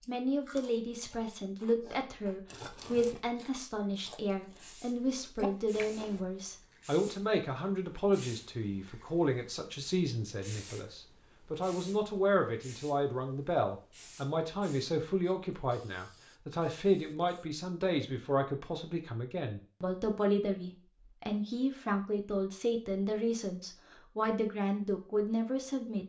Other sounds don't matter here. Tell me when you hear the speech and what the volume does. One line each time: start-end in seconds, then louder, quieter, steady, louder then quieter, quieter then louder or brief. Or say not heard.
0.1-26.0 steady.